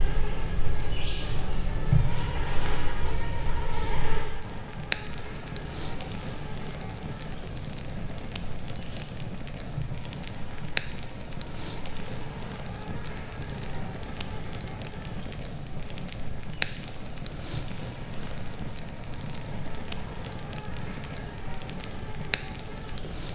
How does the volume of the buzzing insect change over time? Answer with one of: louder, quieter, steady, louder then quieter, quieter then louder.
quieter.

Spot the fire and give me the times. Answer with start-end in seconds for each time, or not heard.
4.4-23.3.